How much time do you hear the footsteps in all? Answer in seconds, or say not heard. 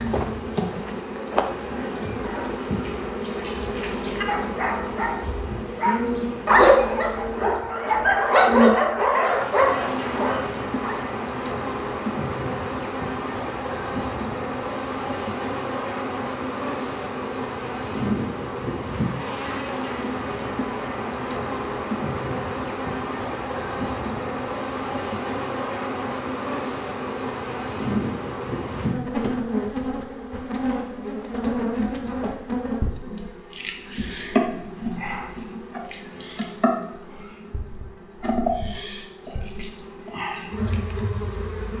2 s.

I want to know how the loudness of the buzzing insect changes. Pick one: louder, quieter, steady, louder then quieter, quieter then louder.
steady.